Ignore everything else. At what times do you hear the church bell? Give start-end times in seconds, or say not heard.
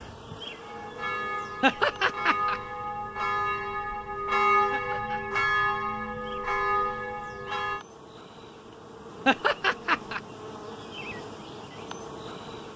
0.6-7.8.